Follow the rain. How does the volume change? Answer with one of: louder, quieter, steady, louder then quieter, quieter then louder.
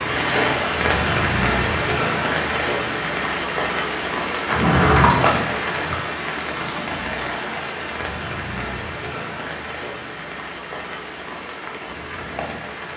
quieter.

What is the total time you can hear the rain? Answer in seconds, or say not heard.
13 s.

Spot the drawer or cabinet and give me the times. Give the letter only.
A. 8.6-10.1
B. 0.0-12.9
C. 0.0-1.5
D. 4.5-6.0
D.